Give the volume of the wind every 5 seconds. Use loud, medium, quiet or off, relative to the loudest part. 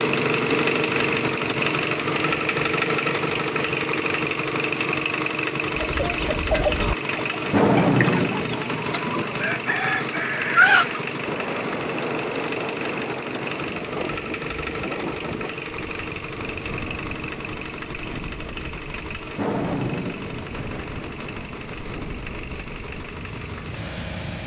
off, off, loud, medium, medium.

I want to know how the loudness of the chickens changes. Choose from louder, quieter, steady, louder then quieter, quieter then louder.
quieter then louder.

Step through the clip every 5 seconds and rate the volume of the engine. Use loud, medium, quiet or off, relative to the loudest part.
loud, loud, medium, medium, quiet.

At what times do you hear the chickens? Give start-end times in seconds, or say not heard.
5.8-11.0.